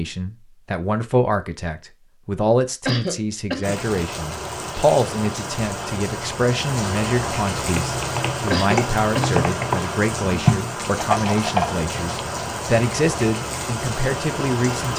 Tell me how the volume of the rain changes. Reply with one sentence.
The loudness of the rain stays about the same.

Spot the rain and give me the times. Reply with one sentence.
The rain can be heard from 3.6 to 14.9 s.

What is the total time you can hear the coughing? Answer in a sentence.
You can hear the coughing for 2 seconds altogether.